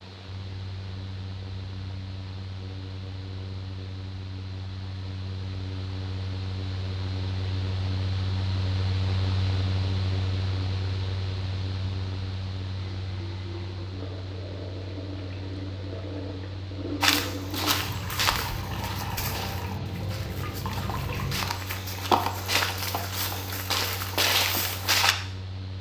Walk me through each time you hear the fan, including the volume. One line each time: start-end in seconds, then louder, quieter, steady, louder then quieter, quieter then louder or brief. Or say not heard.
0.0-25.7 louder then quieter.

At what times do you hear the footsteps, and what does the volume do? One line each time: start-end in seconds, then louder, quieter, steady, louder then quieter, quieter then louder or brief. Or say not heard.
17.0-25.1 quieter then louder.